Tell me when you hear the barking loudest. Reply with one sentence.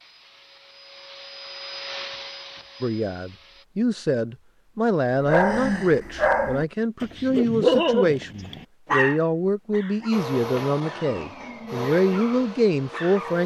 The volume of the barking peaks at 8 seconds.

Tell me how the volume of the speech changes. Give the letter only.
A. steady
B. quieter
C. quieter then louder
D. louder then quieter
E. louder
A.